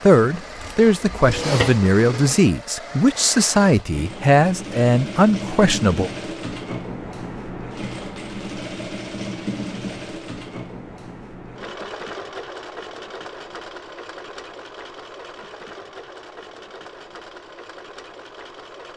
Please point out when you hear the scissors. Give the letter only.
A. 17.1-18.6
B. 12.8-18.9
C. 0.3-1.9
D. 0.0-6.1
C.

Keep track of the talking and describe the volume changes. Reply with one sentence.
The volume of the talking stays about the same.